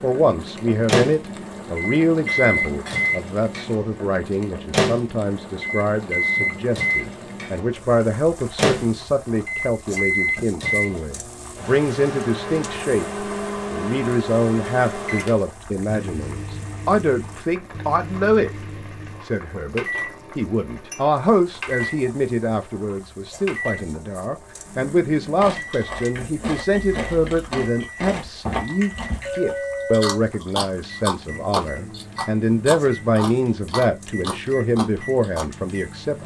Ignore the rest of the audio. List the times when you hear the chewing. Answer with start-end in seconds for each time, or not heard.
25.4-35.5.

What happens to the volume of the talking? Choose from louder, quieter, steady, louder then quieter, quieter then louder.
steady.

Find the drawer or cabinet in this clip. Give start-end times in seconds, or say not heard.
not heard.